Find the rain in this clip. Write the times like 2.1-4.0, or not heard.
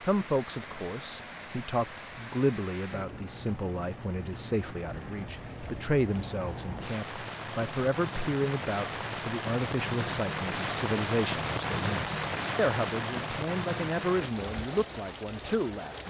0.0-16.0.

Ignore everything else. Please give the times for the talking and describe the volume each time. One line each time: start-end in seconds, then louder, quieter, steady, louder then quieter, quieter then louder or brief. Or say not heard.
0.1-16.0 steady.